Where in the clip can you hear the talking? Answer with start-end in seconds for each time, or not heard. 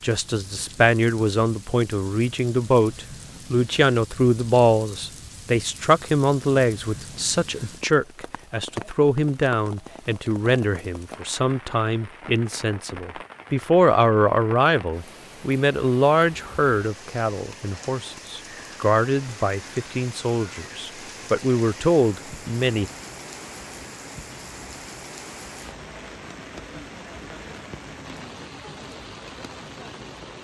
0.0-22.9.